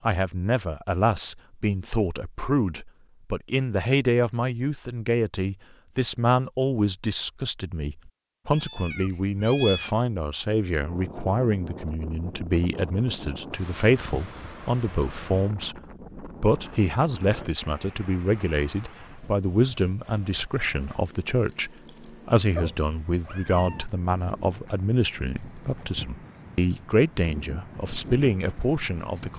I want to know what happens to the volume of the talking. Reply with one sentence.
The loudness of the talking stays about the same.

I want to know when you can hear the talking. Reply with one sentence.
You can hear the talking from 0.0 to 15.8 s and from 16.4 to 29.3 s.